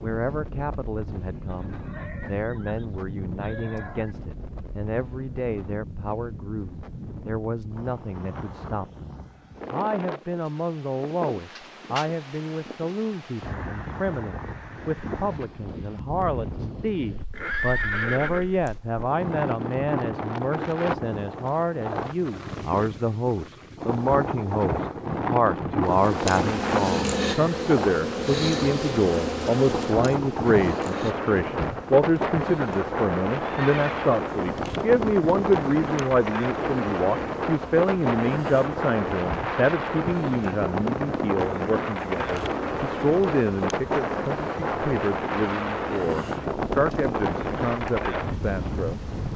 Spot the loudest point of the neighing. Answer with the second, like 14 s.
18 s.